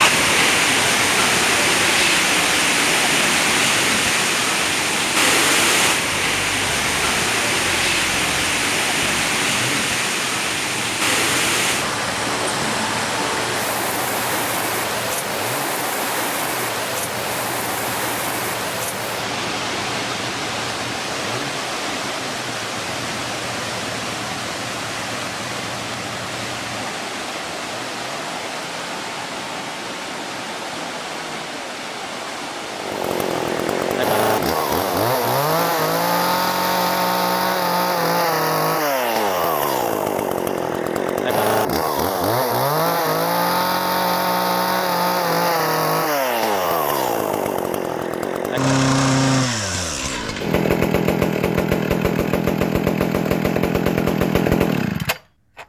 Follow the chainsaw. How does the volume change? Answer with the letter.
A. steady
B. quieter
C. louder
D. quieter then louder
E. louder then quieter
C.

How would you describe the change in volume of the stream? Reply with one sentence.
The loudness of the stream goes down.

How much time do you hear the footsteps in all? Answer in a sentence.
You can't hear the footsteps here.